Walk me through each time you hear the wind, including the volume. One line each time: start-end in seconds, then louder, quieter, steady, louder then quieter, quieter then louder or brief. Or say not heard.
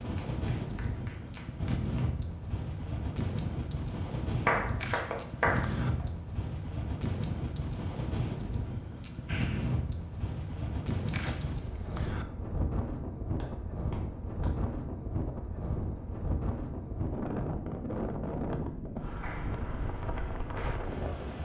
0.0-21.4 steady.